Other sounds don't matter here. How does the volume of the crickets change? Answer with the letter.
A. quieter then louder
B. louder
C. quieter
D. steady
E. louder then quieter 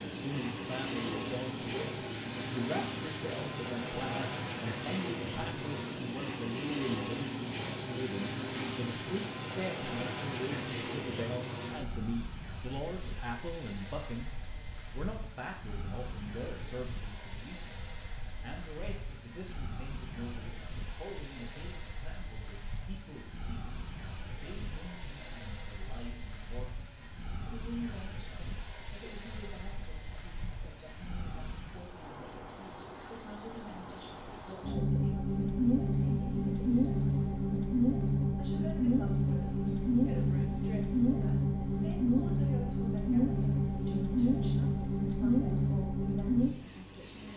B.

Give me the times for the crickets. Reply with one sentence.
You can hear the crickets from 0.0 to 47.3 s.